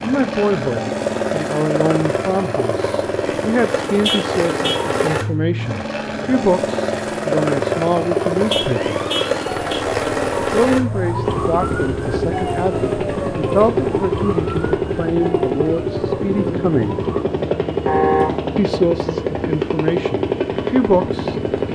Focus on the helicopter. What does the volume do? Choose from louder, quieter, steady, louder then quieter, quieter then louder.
steady.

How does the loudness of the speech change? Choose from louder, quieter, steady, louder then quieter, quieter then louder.
steady.